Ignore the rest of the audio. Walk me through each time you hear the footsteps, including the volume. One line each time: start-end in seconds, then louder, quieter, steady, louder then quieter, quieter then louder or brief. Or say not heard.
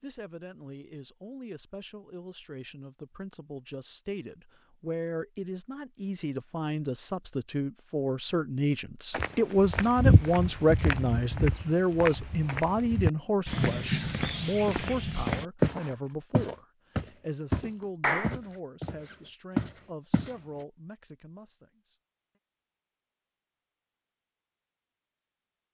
9.1-20.4 steady.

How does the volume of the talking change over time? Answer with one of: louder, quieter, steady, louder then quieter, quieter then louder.
louder then quieter.